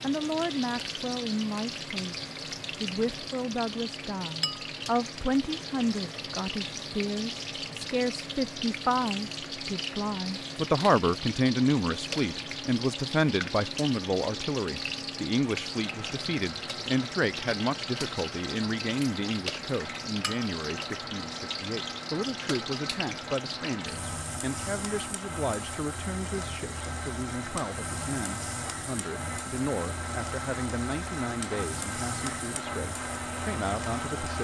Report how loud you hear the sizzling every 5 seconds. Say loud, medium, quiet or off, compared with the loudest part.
loud, loud, loud, loud, loud, medium, medium.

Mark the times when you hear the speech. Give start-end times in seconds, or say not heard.
0.0-34.3.